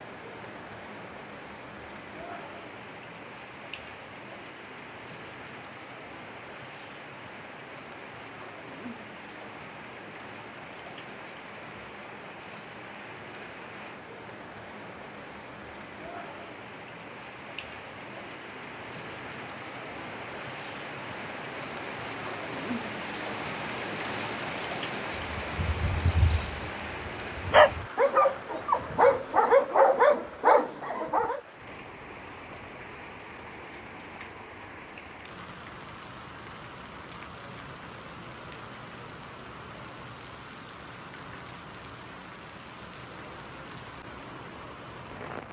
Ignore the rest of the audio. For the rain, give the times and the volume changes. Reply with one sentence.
You can hear the rain from 0.0 to 45.4 s, getting louder then quieter.